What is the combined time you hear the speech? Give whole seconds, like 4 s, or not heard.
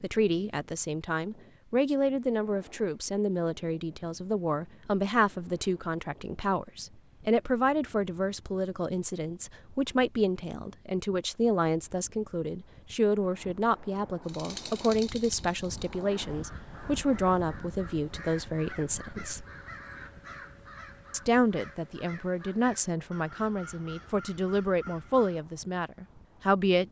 25 s.